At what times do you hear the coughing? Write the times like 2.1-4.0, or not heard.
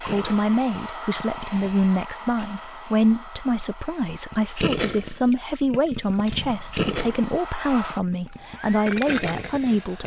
not heard.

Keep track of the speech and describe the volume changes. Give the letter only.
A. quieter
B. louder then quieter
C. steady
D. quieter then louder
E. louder
C.